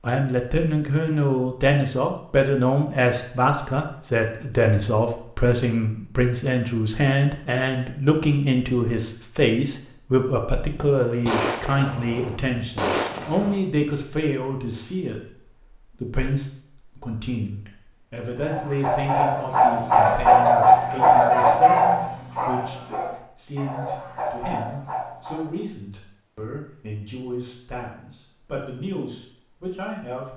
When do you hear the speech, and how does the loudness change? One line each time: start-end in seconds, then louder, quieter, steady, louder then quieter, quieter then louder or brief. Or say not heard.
0.0-30.3 quieter.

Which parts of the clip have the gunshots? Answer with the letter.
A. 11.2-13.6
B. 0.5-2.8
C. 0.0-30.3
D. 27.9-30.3
A.